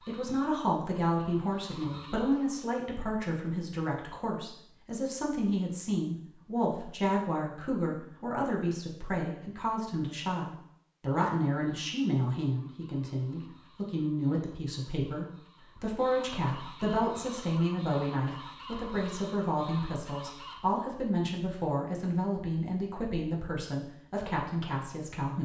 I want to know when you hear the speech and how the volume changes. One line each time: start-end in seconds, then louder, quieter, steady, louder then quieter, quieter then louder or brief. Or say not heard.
0.0-25.4 steady.